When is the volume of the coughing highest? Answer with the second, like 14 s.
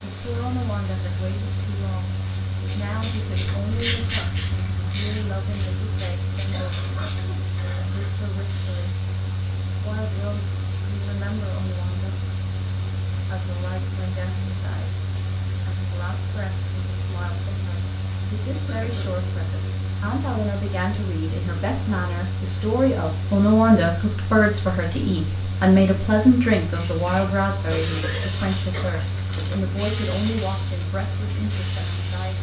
28 s.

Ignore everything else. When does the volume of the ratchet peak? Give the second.
4 s.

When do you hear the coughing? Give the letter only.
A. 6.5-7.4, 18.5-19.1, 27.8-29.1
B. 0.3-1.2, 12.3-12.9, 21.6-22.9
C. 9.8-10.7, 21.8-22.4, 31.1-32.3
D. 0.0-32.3
A.